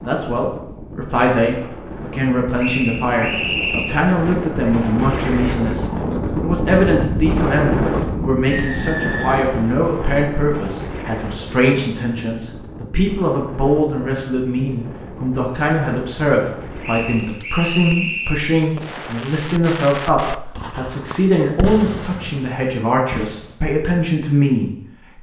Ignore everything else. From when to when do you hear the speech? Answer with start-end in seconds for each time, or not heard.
0.0-25.1.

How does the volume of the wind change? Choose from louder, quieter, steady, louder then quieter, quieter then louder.
louder then quieter.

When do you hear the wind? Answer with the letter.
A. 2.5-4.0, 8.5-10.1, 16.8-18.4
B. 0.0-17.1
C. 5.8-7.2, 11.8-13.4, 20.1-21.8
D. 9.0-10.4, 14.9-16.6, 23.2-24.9
B.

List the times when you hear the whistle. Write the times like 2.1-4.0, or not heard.
2.5-4.0, 8.5-10.1, 16.8-18.4.